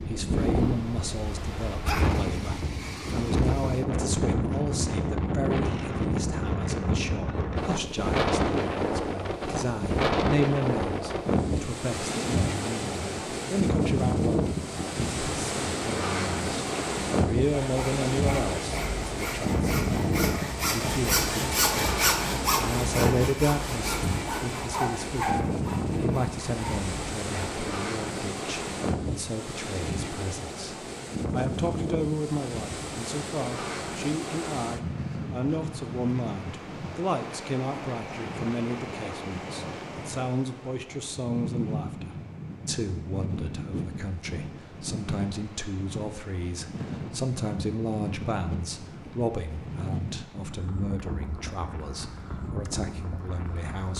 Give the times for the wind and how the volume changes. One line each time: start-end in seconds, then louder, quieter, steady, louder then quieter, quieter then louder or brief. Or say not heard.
0.0-53.9 quieter.